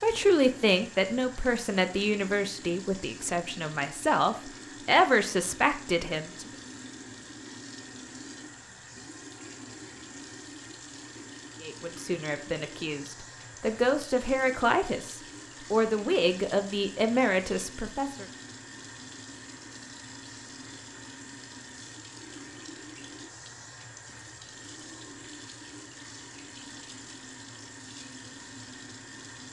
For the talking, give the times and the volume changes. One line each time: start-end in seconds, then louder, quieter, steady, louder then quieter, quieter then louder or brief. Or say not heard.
0.0-6.5 quieter then louder
11.6-18.2 louder.